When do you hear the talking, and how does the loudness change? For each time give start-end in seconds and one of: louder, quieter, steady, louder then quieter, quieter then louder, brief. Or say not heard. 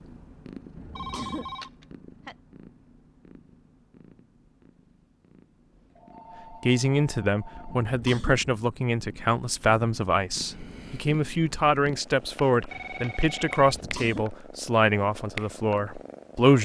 6.5-16.5 steady.